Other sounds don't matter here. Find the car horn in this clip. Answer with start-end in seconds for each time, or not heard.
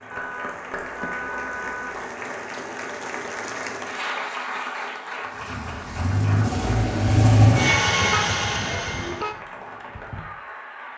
0.1-2.0, 8.0-9.3.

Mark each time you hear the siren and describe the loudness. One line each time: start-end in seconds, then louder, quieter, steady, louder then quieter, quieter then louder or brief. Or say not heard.
not heard.